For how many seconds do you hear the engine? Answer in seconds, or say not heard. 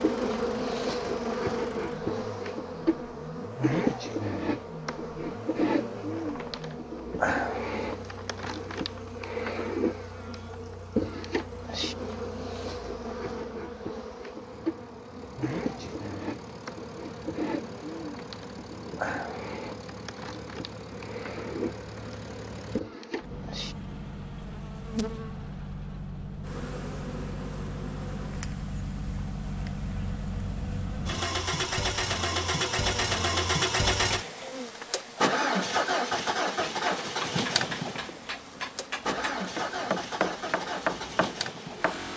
42 s.